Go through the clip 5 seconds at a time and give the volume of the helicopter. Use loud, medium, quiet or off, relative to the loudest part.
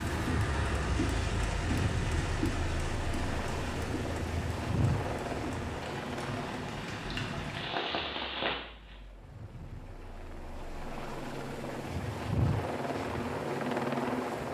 loud, medium, loud.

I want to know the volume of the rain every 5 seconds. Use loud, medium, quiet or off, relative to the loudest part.
loud, loud, off.